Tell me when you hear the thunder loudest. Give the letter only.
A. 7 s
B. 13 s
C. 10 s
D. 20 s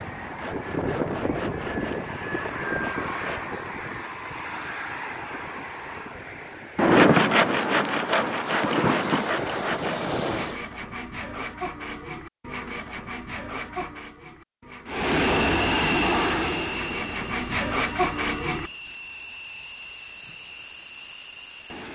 A.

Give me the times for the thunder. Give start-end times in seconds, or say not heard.
6.8-9.3.